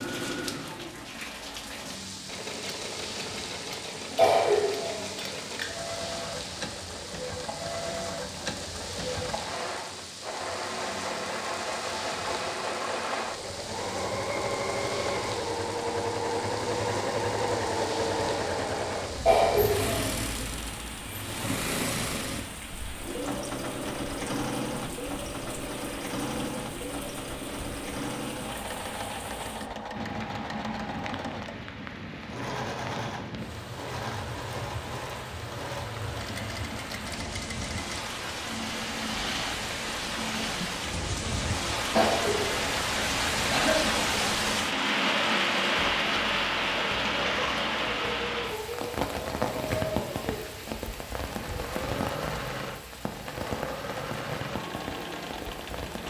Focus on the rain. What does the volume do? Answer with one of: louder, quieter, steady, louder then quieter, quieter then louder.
louder.